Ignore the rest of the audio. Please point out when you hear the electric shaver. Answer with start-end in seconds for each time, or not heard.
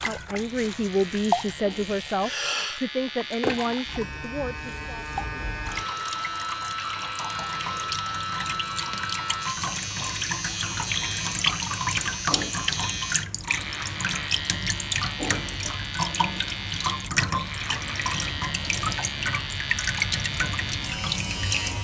0.3-21.7.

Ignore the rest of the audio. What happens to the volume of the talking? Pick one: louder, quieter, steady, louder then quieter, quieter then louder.
quieter.